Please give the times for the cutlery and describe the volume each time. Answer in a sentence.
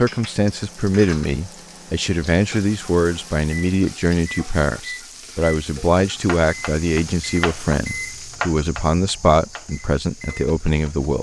The cutlery can't be heard in this clip.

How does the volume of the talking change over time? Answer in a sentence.
The volume of the talking stays about the same.